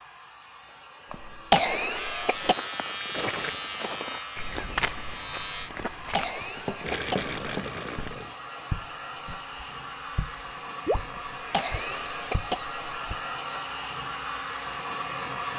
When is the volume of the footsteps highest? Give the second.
5 s.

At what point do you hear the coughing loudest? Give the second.
2 s.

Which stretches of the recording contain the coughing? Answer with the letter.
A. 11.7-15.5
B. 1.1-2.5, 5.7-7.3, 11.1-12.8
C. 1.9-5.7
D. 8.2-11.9
B.